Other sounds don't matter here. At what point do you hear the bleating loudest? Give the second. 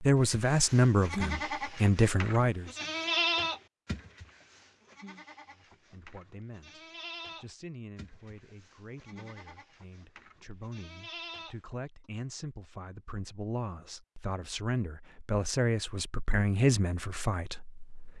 3 s.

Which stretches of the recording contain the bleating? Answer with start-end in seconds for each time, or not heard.
0.1-11.6.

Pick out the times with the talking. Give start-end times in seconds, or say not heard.
0.0-2.7, 5.5-18.1.